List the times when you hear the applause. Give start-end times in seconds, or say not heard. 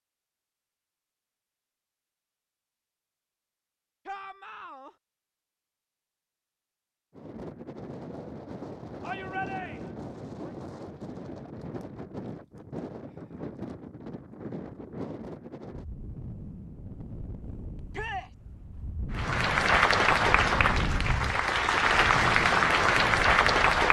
19.1-23.8.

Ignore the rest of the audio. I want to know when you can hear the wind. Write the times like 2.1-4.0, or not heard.
7.2-23.8.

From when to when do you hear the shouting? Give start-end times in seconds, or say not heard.
4.0-5.0, 9.0-9.9, 17.9-18.4.